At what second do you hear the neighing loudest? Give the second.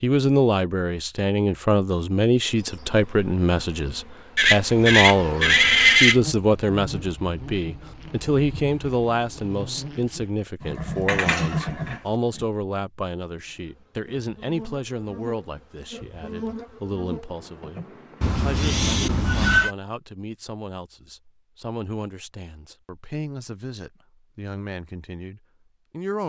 6 s.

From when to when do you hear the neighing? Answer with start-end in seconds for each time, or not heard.
4.3-6.2, 10.6-12.4, 18.2-19.8.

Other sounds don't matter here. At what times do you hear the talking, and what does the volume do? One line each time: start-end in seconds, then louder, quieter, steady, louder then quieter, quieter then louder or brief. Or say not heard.
0.0-26.2 quieter.